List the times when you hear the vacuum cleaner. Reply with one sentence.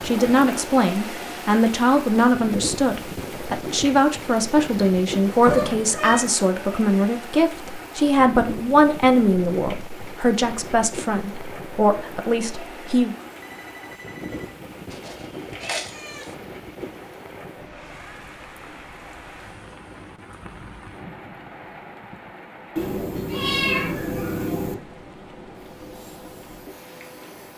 The vacuum cleaner can be heard from 25.6 to 27.5 s.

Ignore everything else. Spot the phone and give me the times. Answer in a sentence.
You can hear the phone from 13.4 to 14.6 s.